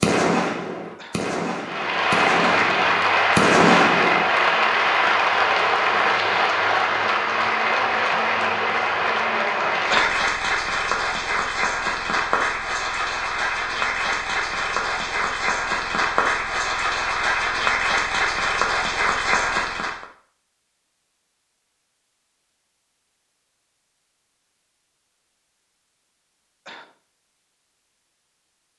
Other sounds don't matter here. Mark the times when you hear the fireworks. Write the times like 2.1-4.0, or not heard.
0.0-4.3.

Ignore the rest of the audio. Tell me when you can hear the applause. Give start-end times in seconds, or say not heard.
1.6-20.1.